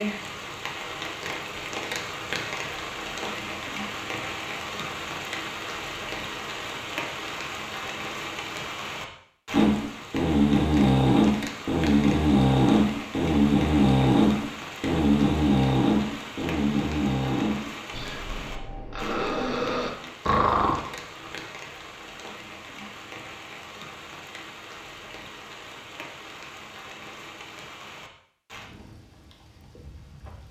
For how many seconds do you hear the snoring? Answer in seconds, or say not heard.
12 s.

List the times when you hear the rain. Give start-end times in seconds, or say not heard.
0.0-30.4.